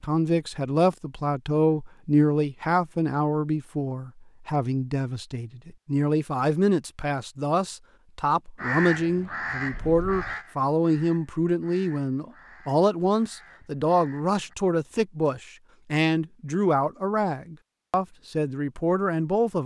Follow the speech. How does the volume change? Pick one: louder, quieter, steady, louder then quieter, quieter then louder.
steady.